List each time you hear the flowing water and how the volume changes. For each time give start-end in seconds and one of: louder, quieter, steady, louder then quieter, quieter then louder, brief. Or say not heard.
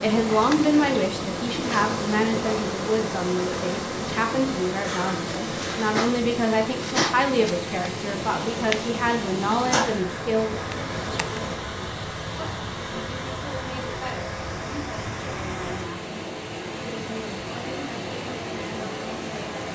0.0-19.7 steady.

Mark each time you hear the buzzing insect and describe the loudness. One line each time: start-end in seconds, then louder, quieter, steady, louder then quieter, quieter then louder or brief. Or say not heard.
0.0-11.6 steady.